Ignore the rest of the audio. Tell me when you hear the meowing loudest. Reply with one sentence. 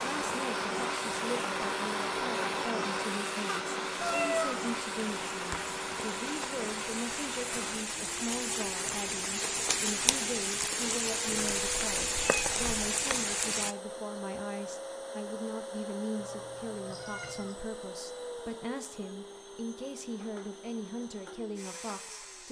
The loudest moment of the meowing is at 4 seconds.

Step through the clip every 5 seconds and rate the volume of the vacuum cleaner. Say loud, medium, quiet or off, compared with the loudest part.
loud, medium, medium, medium, quiet.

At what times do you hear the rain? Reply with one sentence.
You can hear the rain from 0.0 to 13.8 s.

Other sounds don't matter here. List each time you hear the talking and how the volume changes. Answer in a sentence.
The talking can be heard from 0.0 to 22.4 s, at a steady volume.